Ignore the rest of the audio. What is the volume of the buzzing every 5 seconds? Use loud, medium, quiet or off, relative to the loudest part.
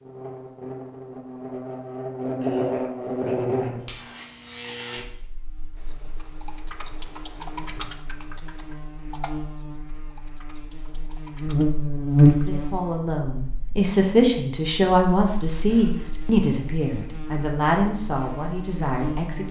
medium, quiet, loud, quiet.